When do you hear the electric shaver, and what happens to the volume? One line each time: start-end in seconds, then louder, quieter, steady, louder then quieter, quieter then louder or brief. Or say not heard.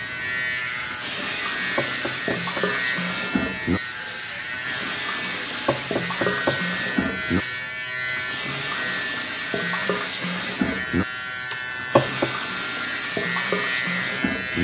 0.0-14.6 steady.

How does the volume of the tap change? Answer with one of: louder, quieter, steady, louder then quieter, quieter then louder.
steady.